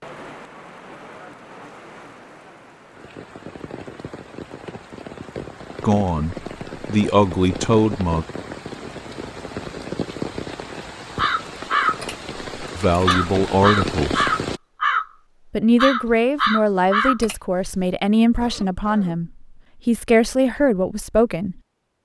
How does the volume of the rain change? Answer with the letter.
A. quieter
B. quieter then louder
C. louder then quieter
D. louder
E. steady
D.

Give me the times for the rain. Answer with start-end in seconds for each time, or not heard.
0.0-14.6.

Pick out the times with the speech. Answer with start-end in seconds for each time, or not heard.
5.8-8.2, 12.8-14.3, 15.5-21.6.